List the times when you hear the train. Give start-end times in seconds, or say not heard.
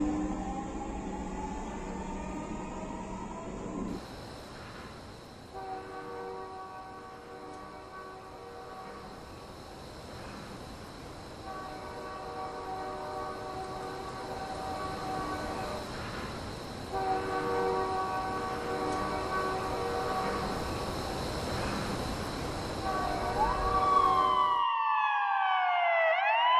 0.0-24.6.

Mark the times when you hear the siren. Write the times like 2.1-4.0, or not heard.
23.1-26.5.